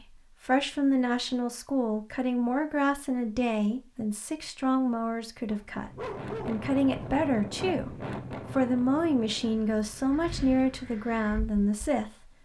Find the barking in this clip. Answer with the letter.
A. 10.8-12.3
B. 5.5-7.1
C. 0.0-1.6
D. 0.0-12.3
B.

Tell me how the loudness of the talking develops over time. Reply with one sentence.
The loudness of the talking stays about the same.